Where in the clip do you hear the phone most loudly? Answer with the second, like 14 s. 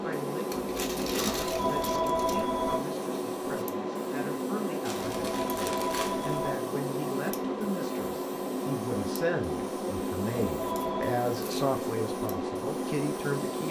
2 s.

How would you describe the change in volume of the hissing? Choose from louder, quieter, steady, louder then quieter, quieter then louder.
steady.